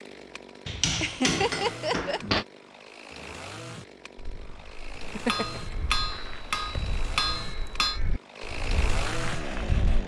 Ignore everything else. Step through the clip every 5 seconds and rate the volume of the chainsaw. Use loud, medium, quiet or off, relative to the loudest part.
medium, loud.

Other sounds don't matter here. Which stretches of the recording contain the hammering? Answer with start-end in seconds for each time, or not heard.
0.7-2.5, 5.2-8.0.